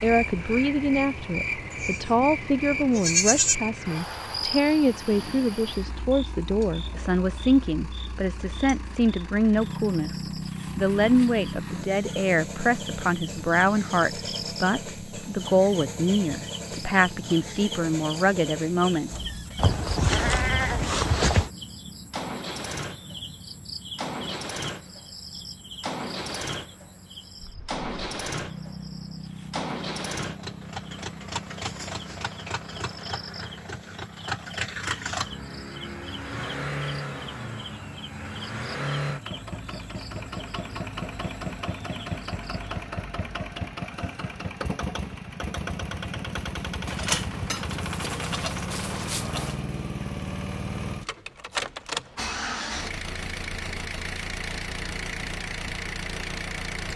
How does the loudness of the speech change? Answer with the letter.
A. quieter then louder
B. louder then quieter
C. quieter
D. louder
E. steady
E.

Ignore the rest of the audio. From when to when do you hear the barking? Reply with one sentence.
You can't hear the barking here.